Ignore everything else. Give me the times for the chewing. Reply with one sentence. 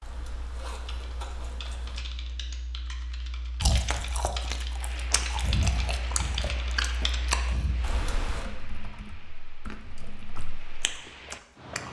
You can hear the chewing from 3.6 to 7.8 s and from 9.7 to 11.8 s.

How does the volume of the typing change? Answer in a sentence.
The volume of the typing goes up, then down.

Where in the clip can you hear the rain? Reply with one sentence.
You can hear the rain from 4.7 to 11.8 s.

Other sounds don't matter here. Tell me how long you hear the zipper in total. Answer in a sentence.
The zipper can be heard for 3 seconds in total.